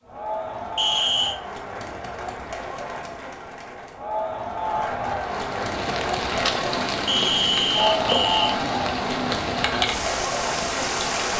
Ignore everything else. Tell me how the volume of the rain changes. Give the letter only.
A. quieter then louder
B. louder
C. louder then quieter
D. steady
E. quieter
D.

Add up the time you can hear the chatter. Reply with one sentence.
You can hear the chatter for 11 seconds altogether.